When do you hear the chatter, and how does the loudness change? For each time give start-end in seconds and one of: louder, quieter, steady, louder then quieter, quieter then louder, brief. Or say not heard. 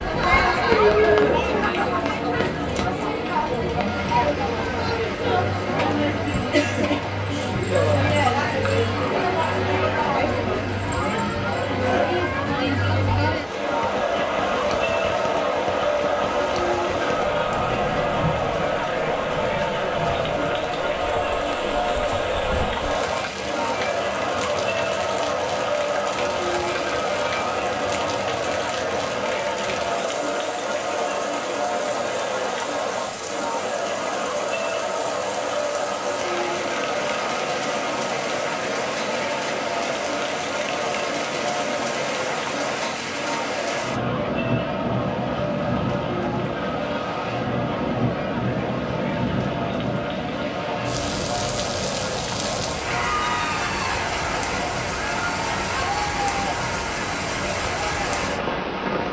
0.0-59.0 quieter.